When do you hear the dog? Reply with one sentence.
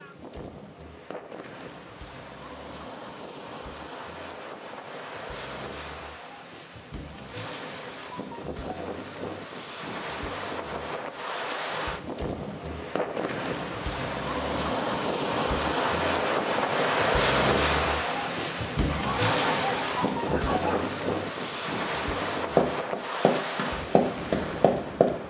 The dog can be heard from 18.9 to 20.9 s.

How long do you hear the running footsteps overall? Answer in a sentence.
You can hear the running footsteps for 3 seconds altogether.